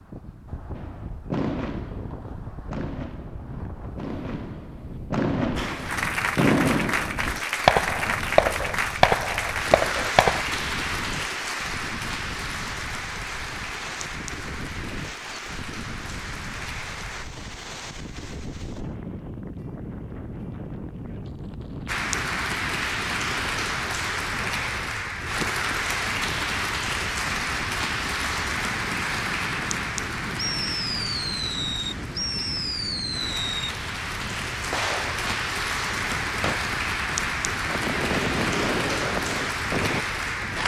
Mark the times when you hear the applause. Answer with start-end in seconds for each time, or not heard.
5.5-17.2, 21.9-40.6.